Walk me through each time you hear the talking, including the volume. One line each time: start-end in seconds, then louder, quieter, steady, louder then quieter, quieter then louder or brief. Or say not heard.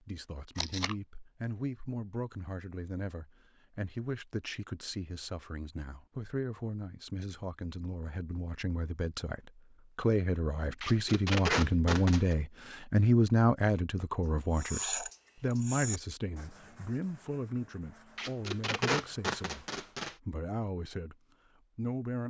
0.1-21.1 louder then quieter
21.8-22.2 brief.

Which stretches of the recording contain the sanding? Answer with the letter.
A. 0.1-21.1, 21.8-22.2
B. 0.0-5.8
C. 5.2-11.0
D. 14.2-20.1
D.